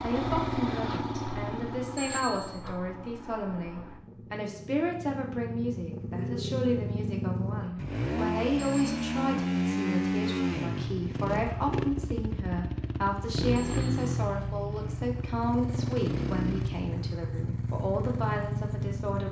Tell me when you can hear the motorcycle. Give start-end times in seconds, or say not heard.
0.0-19.2.